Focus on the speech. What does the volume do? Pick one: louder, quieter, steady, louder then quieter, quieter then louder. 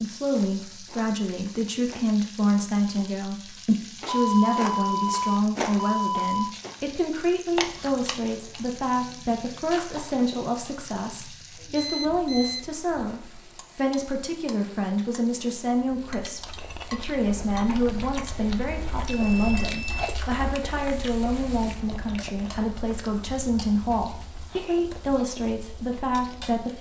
steady.